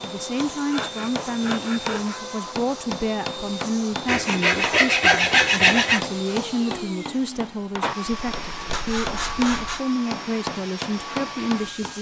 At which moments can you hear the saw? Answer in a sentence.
The saw can be heard from 0.7 to 2.2 s, from 4.0 to 6.0 s and from 8.1 to 9.8 s.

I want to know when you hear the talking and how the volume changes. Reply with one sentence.
The talking can be heard from 0.0 to 11.9 s, at a steady volume.